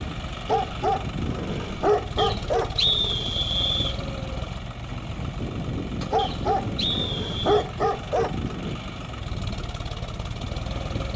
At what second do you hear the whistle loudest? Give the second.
3 s.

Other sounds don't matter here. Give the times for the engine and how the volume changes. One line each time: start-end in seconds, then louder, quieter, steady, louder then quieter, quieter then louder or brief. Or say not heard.
0.0-11.1 steady.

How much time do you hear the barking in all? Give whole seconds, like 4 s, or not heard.
5 s.